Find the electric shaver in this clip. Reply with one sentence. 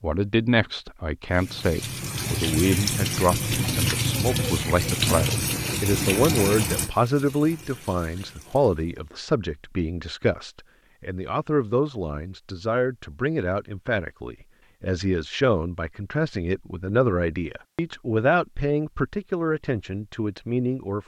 The electric shaver can't be heard in this clip.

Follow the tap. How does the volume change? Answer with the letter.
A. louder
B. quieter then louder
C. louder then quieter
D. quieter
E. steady
D.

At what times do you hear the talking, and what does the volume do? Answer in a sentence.
The talking can be heard from 0.0 to 21.0 s, at a steady volume.